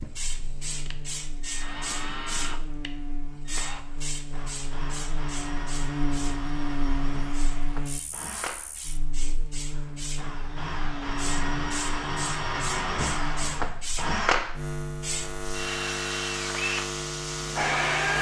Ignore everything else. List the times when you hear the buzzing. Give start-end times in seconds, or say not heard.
0.0-18.1.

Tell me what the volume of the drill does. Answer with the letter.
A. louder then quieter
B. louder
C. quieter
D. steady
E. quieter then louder
B.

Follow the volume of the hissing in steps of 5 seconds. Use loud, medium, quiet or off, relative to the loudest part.
loud, medium, loud, loud.